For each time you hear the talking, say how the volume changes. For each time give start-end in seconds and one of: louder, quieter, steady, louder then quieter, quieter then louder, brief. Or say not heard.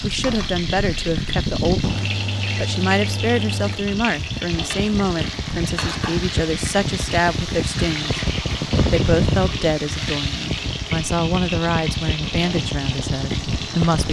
0.0-14.0 steady.